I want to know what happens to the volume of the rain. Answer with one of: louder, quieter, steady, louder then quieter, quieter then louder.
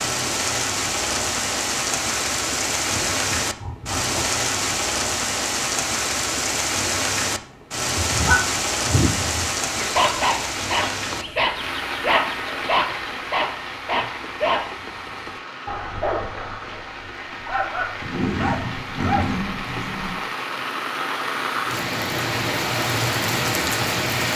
quieter then louder.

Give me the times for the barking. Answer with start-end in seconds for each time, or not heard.
7.9-19.4.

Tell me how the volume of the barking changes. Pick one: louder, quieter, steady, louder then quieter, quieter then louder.
quieter.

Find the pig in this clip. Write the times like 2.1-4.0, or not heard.
2.9-4.3, 11.2-12.8, 18.0-20.1.